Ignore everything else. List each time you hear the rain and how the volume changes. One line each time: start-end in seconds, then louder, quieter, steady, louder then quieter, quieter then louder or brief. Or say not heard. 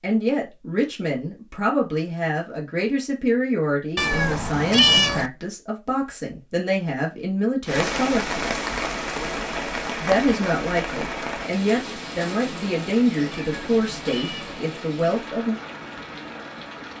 7.7-16.9 quieter.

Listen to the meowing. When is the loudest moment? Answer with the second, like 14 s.
5 s.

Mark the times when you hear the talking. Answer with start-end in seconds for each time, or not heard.
0.0-8.6, 9.9-15.6.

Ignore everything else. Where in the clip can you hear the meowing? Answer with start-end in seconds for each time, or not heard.
4.0-5.3, 13.3-14.6.